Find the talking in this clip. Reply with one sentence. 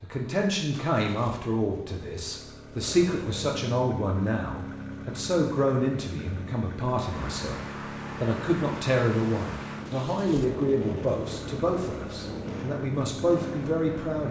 The talking can be heard from 0.0 to 14.2 s.